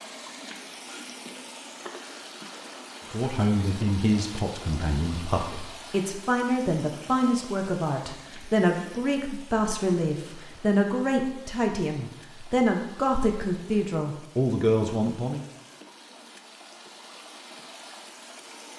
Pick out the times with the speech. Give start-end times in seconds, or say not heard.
3.1-15.4.